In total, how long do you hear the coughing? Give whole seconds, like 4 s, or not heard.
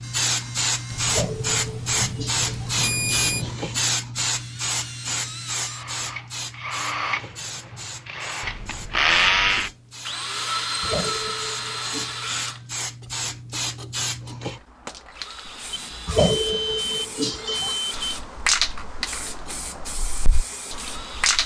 6 s.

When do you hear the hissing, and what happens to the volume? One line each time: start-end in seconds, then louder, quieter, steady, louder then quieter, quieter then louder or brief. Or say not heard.
0.0-21.4 quieter then louder.